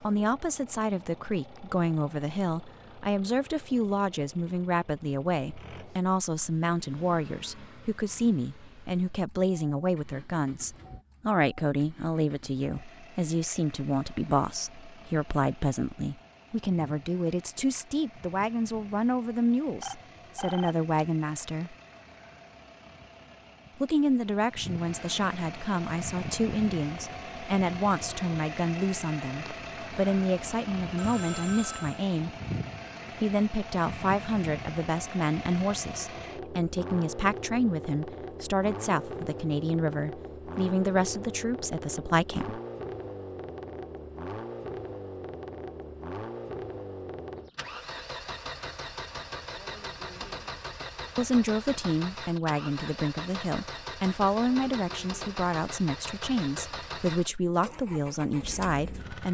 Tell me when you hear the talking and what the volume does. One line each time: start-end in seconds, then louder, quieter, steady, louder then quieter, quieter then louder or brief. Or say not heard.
0.0-21.8 steady
23.8-32.4 steady
33.2-42.6 steady
51.1-59.2 steady.